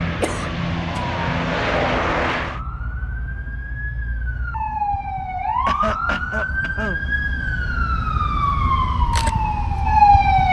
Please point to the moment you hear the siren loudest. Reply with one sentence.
The loudest moment of the siren is at 10 seconds.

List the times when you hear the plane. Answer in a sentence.
You can hear the plane from 0.0 to 2.6 s.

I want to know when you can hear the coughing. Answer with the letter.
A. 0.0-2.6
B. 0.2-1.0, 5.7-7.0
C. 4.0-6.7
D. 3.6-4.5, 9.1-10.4
B.